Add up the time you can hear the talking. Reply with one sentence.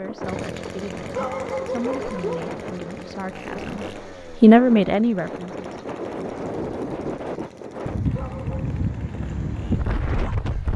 The talking can be heard for 6 seconds in total.